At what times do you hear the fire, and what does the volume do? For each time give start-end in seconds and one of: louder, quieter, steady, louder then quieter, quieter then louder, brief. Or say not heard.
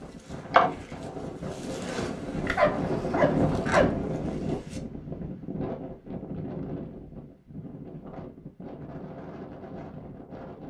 not heard.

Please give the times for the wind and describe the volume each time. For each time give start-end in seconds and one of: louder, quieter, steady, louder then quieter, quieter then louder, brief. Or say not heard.
0.0-10.6 louder then quieter.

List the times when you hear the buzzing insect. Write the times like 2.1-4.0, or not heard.
0.5-4.8.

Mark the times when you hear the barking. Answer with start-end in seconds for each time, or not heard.
2.5-4.0.